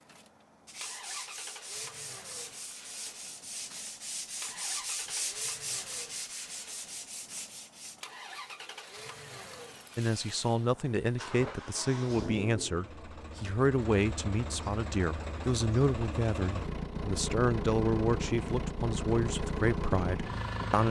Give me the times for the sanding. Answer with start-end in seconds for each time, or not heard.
0.7-8.0.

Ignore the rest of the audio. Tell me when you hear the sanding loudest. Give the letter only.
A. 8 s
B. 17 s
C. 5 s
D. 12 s
C.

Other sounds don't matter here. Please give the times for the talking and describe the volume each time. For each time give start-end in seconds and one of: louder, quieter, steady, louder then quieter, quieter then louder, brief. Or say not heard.
9.9-20.8 steady.